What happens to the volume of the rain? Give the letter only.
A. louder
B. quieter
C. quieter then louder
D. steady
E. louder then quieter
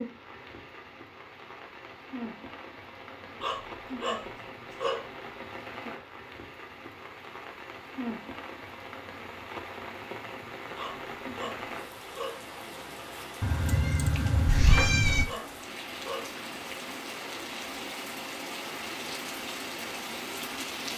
A.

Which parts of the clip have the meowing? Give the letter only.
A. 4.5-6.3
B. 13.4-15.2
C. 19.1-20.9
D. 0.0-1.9
B.